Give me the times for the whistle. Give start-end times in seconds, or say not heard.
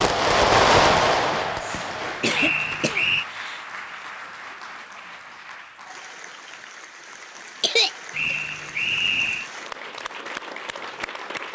2.3-3.2, 8.1-9.5.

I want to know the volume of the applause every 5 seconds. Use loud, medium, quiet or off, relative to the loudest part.
loud, medium, loud.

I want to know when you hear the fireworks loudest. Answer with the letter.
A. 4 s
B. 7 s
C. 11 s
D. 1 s
D.